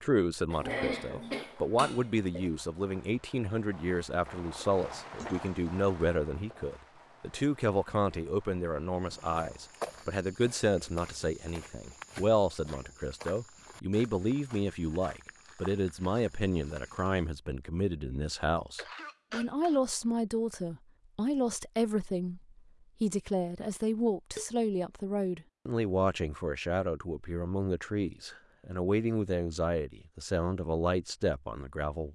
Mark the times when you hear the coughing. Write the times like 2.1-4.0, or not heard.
0.5-2.5, 18.8-19.8.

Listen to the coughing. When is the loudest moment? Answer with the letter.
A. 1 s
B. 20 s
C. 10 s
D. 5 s
A.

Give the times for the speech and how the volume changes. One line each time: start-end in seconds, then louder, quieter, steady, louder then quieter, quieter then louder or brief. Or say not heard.
0.0-22.4 steady
23.0-32.0 steady.